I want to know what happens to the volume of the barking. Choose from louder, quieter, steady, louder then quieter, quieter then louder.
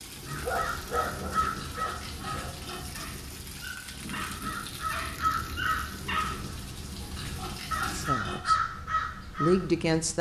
quieter then louder.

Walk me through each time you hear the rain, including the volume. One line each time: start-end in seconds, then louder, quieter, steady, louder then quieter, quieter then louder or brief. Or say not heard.
0.0-8.2 steady.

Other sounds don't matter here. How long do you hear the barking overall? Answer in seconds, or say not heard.
7 s.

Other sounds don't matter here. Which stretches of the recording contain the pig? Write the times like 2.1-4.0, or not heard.
1.6-2.9, 7.2-8.4.